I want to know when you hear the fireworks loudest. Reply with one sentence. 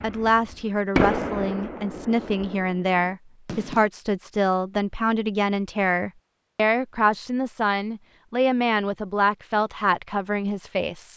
The volume of the fireworks peaks at 1 second.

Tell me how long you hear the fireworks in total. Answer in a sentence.
You can hear the fireworks for 4 seconds altogether.